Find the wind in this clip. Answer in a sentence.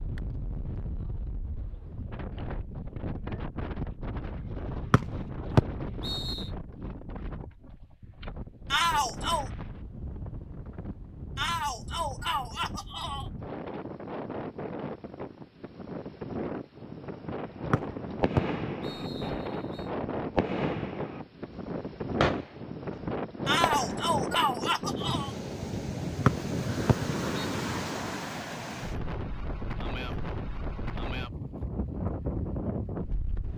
You can hear the wind from 0.0 to 33.5 s.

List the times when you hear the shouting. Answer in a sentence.
You can hear the shouting from 8.7 to 9.5 s, from 11.3 to 13.3 s and from 23.4 to 25.4 s.